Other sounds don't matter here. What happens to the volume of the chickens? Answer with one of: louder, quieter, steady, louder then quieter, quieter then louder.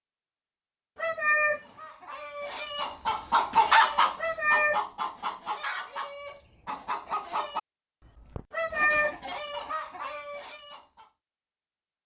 quieter.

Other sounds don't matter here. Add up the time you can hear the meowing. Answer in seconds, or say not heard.
2 s.